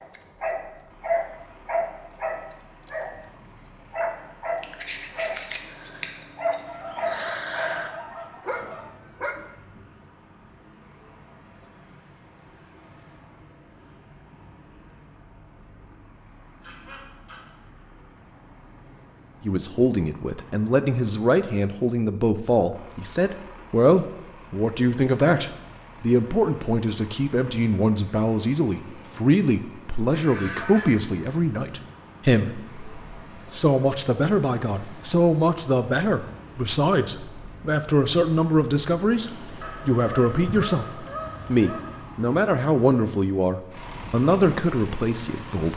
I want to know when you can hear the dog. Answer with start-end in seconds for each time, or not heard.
0.0-9.4.